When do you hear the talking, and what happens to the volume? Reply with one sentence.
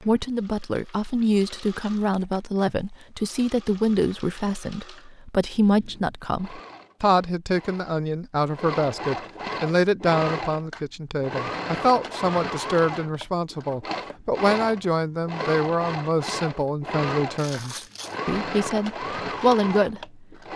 The talking can be heard from 0.0 to 20.0 s, at a steady volume.